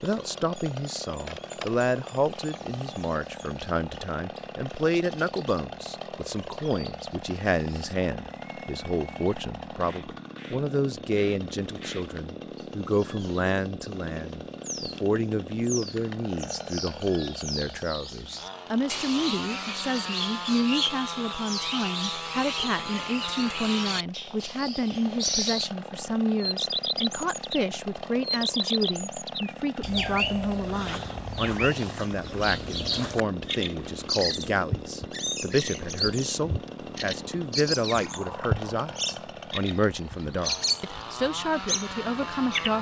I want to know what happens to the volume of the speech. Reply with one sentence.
The loudness of the speech stays about the same.